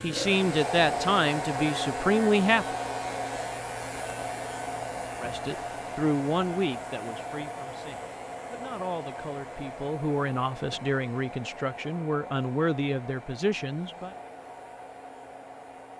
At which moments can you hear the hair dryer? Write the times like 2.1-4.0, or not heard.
0.0-15.9.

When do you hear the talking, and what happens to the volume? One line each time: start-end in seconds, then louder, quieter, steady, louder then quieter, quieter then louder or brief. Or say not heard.
0.0-2.8 brief
5.2-14.2 quieter then louder.